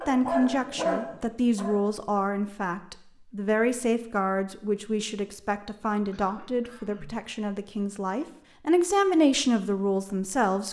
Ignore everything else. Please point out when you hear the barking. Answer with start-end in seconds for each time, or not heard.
0.0-2.2.